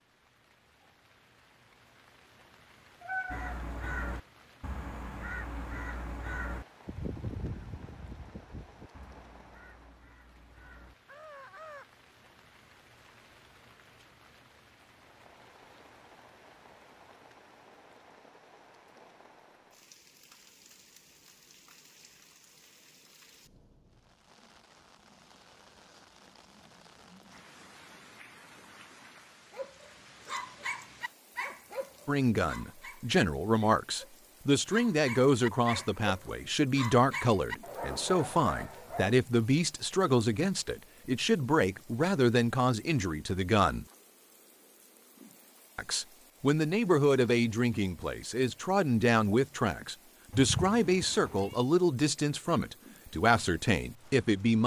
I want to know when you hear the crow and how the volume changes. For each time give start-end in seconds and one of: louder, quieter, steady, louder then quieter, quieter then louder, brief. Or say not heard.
3.2-11.8 quieter.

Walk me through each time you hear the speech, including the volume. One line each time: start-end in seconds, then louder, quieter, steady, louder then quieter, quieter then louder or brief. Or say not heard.
32.0-43.9 steady
45.8-54.6 steady.